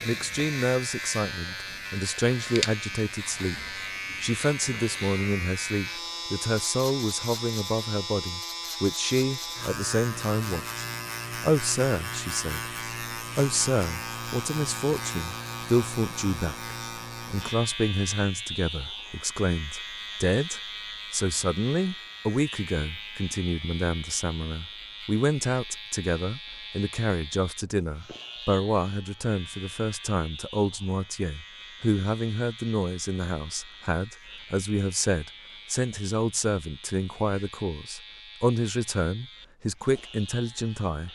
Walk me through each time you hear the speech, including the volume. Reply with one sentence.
The speech can be heard from 0.0 to 41.1 s, at a steady volume.